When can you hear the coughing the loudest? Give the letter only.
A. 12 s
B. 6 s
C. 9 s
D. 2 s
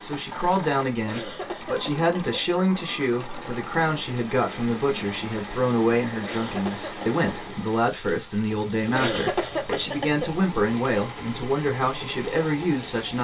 C.